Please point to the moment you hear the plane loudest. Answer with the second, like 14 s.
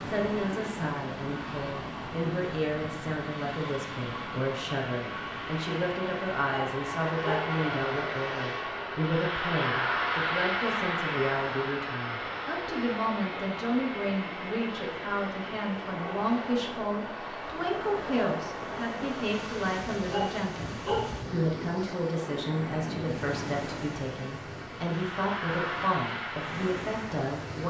10 s.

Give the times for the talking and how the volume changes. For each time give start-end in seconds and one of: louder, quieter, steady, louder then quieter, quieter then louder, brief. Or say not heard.
0.0-27.6 steady.